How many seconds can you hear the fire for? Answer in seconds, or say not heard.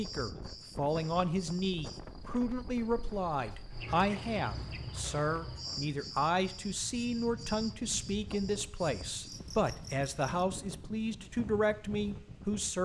not heard.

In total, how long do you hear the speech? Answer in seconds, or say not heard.
13 s.